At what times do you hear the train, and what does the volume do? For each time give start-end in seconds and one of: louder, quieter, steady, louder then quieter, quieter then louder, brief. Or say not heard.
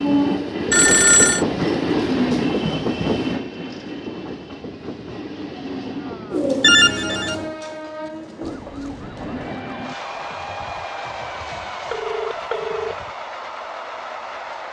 0.0-14.6 quieter.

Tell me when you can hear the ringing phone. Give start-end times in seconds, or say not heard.
0.7-1.4, 6.6-7.5, 11.9-12.9.